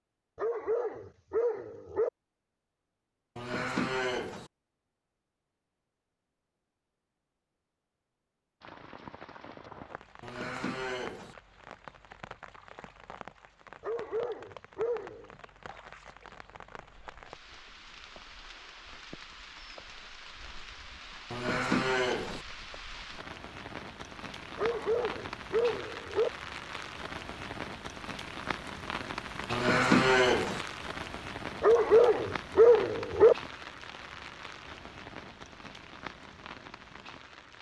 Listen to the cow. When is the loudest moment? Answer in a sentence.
The loudest moment of the cow is at 30 seconds.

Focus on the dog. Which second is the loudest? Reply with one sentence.
The loudest moment of the dog is at 33 seconds.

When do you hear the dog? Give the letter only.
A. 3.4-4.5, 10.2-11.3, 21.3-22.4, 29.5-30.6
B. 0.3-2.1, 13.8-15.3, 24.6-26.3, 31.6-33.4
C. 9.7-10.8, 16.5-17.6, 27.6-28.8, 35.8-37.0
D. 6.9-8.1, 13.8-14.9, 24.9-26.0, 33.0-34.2
B.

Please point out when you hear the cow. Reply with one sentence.
The cow can be heard from 3.4 to 4.5 s, from 10.2 to 11.3 s, from 21.3 to 22.4 s and from 29.5 to 30.6 s.